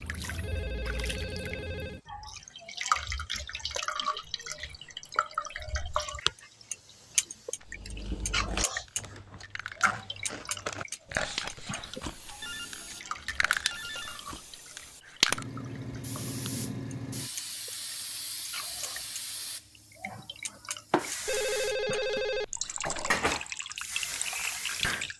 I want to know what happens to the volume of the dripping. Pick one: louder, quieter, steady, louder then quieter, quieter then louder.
quieter then louder.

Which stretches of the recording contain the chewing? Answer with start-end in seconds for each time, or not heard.
7.7-14.6.